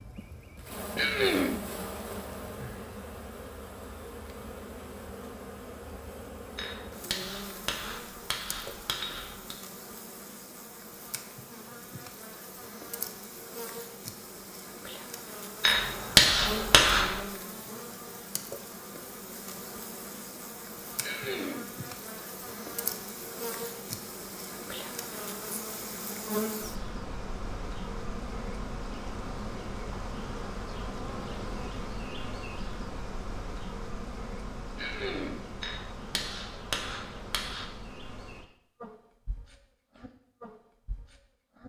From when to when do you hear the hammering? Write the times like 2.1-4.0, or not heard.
6.5-9.6, 15.6-17.2, 35.6-37.7.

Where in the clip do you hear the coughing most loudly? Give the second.
1 s.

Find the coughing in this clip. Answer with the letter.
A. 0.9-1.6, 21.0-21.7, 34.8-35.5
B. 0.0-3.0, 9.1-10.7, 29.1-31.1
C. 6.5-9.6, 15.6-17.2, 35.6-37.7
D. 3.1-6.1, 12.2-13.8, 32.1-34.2
A.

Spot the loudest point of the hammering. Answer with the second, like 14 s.
16 s.